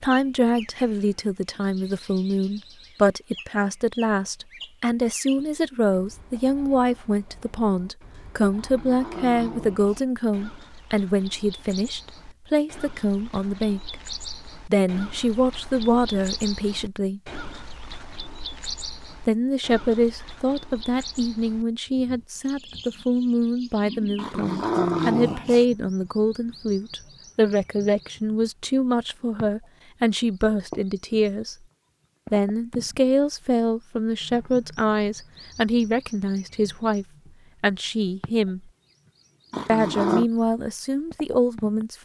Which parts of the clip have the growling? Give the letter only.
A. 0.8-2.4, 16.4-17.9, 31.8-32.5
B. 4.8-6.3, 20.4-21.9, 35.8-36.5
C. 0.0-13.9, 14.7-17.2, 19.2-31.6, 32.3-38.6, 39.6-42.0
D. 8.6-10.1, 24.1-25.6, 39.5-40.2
D.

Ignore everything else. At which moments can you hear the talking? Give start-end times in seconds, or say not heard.
0.0-13.9, 14.7-17.2, 19.2-31.6, 32.3-38.6, 39.6-42.0.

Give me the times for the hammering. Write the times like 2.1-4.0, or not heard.
not heard.